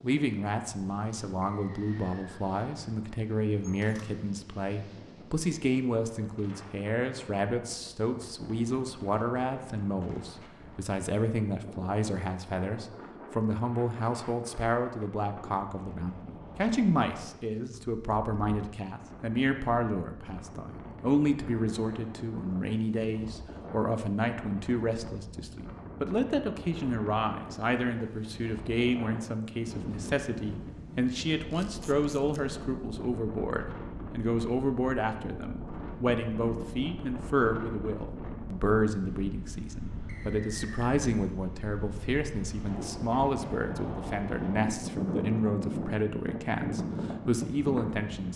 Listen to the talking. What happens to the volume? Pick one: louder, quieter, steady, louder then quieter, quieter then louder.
steady.